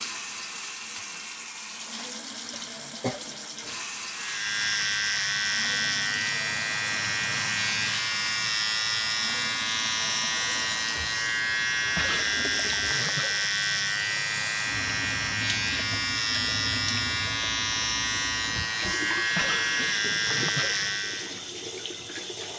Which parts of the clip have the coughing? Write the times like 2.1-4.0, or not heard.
2.5-3.2, 11.9-13.4, 19.3-20.9.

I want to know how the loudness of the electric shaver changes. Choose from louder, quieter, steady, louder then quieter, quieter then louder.
steady.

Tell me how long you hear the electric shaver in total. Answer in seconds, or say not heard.
17 s.